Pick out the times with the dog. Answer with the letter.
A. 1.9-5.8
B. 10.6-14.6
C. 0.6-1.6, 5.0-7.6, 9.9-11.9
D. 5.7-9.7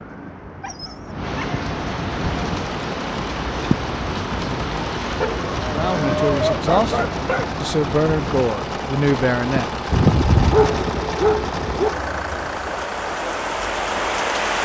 C.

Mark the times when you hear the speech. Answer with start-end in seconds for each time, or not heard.
5.7-9.7.